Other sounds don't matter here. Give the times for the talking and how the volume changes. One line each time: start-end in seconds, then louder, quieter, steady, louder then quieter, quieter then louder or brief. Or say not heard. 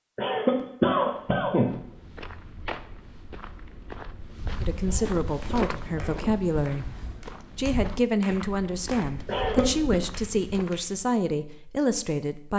4.6-12.5 steady.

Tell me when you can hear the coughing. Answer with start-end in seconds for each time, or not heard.
0.1-1.8, 4.8-6.4, 9.2-10.0.